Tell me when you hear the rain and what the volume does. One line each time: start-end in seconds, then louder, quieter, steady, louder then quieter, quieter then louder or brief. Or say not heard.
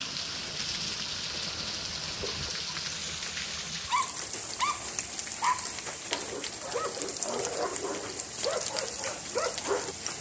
0.0-10.1 steady.